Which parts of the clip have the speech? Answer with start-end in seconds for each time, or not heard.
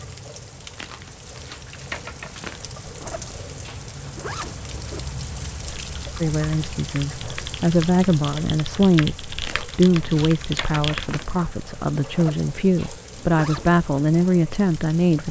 6.2-15.2.